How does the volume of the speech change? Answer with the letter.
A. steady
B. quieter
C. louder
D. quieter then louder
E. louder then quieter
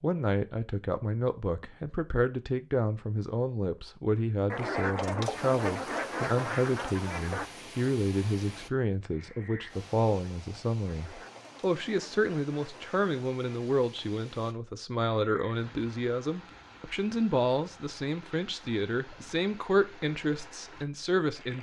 A.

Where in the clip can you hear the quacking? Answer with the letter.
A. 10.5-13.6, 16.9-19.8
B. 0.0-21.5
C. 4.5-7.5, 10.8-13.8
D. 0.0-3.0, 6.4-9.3
C.